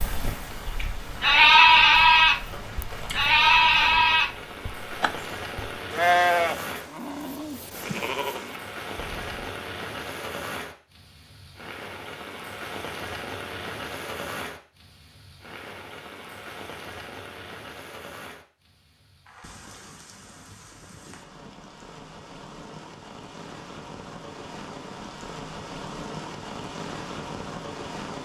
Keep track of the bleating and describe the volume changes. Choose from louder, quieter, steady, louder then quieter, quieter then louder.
quieter.